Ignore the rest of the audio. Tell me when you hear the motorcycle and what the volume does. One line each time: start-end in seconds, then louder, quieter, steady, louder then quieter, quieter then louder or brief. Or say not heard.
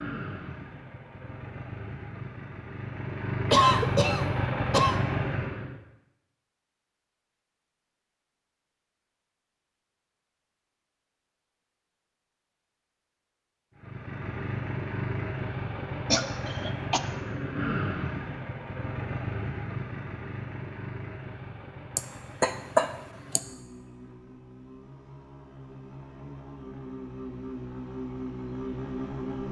0.0-5.8 louder
13.8-29.4 quieter then louder.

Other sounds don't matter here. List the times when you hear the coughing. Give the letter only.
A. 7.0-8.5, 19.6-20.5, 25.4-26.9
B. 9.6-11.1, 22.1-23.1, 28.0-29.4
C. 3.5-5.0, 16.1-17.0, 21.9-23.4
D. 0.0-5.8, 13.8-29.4
C.